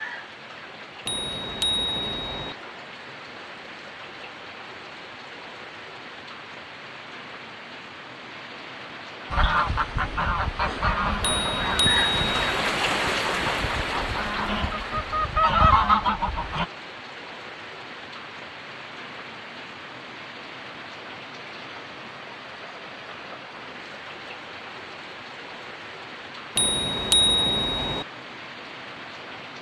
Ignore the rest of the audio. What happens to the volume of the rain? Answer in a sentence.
The volume of the rain goes up, then down.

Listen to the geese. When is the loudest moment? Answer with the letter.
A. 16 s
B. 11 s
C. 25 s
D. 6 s
A.